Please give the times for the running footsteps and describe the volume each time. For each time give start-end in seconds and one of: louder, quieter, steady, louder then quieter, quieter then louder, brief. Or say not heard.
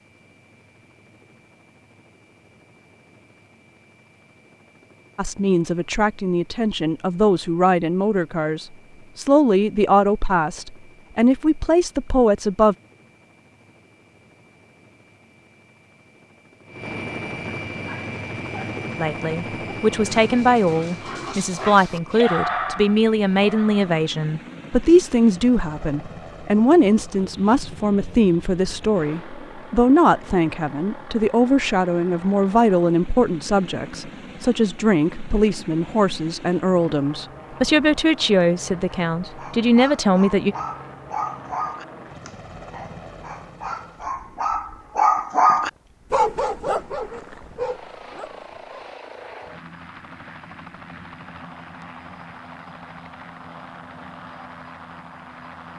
not heard.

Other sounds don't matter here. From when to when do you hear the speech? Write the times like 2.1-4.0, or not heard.
5.2-12.8, 19.0-40.5.